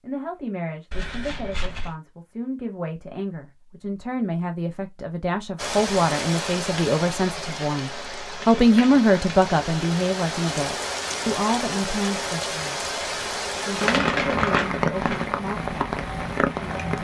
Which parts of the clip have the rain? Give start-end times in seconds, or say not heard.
5.5-17.0.